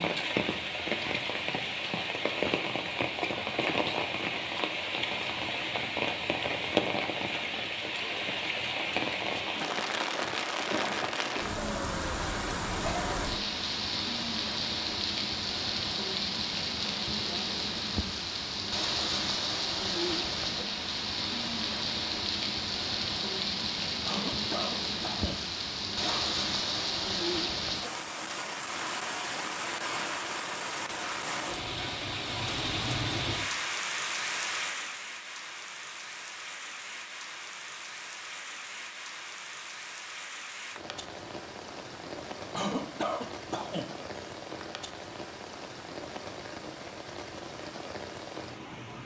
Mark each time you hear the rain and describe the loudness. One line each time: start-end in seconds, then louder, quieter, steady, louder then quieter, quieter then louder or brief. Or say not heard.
0.0-49.0 quieter.